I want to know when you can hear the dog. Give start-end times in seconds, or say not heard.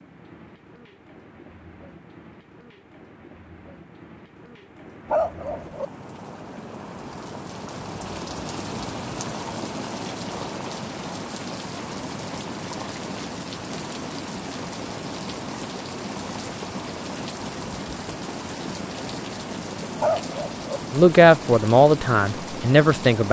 5.1-5.8, 20.0-20.8.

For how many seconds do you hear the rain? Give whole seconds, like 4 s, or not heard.
23 s.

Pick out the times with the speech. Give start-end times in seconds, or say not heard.
20.9-23.2.